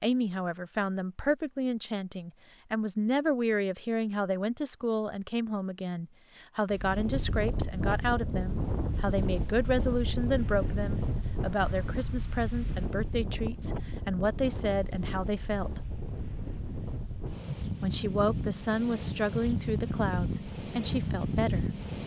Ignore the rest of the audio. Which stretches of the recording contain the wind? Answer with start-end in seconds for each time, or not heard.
6.7-22.0.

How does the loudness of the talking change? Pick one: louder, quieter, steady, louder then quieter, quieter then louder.
steady.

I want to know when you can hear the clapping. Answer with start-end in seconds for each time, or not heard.
not heard.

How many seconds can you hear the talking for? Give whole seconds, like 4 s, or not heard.
20 s.